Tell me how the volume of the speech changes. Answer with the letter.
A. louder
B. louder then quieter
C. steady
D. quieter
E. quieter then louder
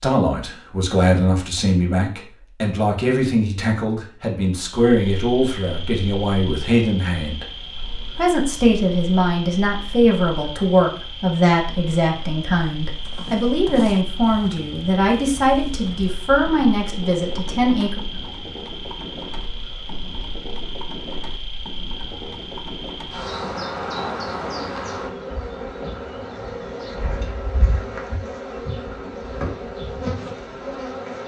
C.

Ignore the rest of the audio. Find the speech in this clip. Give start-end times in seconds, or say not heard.
0.0-7.5, 8.2-18.0.